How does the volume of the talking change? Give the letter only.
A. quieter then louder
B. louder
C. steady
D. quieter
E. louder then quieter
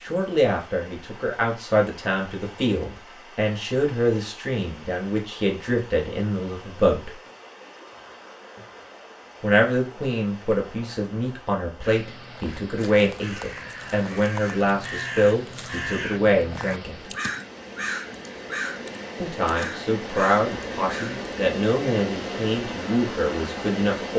C.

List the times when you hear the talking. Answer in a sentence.
You can hear the talking from 0.0 to 7.2 s, from 9.4 to 17.1 s and from 19.2 to 24.1 s.